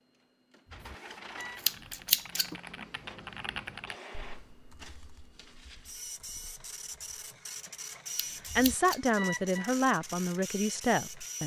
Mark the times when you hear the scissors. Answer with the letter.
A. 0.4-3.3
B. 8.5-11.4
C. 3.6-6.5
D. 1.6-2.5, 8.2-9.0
D.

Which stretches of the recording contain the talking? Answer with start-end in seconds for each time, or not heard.
8.5-11.4.